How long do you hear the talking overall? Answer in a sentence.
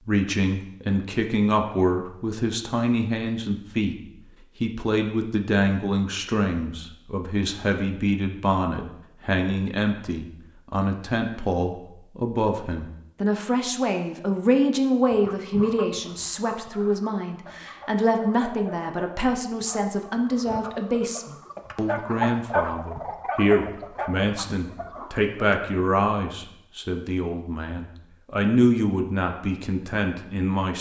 The talking can be heard for 30 seconds in total.